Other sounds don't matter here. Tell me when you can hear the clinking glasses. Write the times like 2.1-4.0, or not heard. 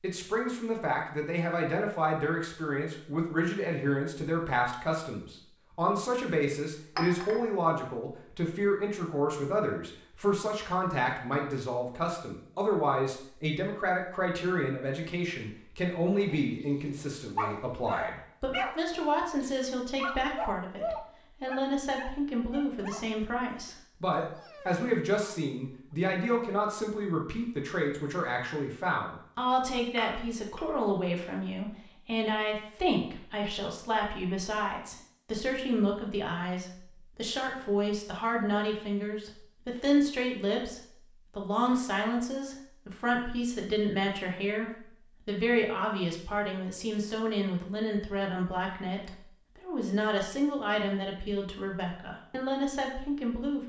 7.0-7.4, 29.9-30.6.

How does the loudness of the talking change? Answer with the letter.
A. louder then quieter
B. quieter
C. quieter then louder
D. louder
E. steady
E.